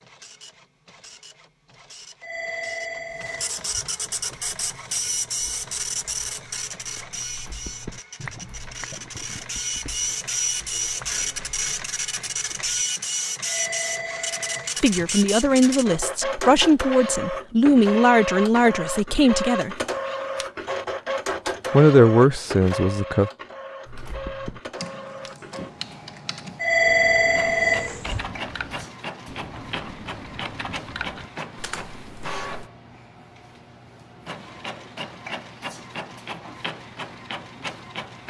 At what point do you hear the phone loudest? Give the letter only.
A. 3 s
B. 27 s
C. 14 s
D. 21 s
B.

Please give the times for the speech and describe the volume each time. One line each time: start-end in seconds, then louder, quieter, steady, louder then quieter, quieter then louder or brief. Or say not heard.
14.8-19.8 steady
21.7-23.3 brief.